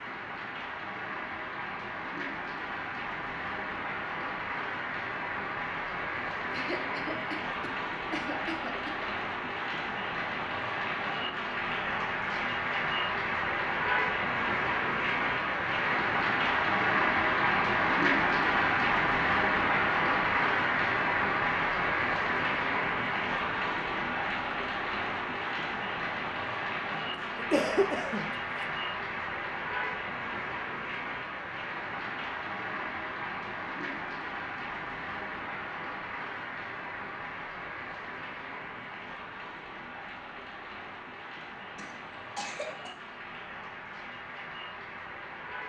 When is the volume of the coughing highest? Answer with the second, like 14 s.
28 s.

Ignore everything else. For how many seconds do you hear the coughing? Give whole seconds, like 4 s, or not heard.
5 s.